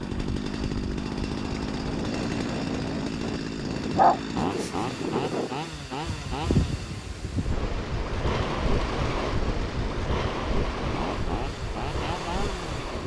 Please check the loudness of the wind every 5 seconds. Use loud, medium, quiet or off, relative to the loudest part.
medium, loud, loud.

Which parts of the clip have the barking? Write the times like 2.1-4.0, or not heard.
3.8-5.0.